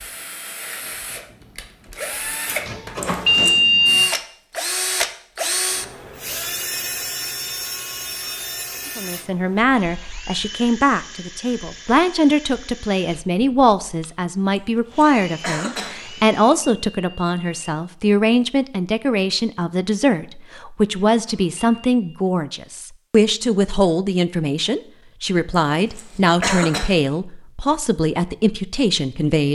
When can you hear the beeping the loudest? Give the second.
4 s.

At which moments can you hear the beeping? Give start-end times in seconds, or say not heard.
2.5-4.1, 15.9-17.8, 21.1-21.9.